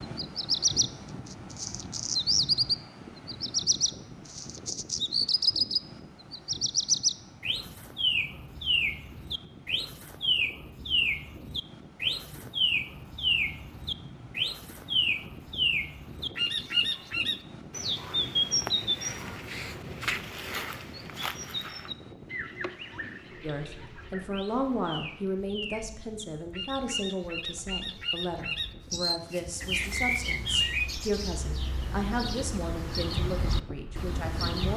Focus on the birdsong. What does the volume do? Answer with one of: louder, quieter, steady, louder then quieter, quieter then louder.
quieter then louder.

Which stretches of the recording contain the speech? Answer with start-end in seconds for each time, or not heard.
23.4-34.7.